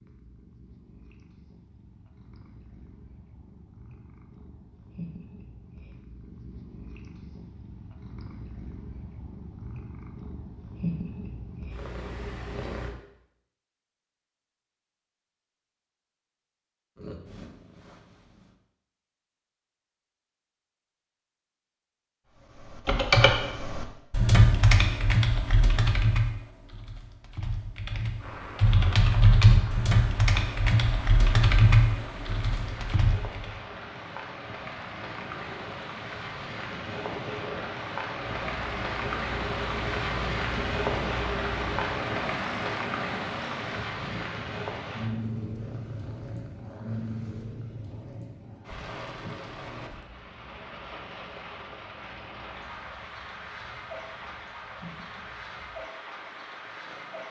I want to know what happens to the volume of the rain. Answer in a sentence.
The loudness of the rain goes up, then down.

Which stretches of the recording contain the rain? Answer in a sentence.
You can hear the rain from 28.1 to 57.2 s.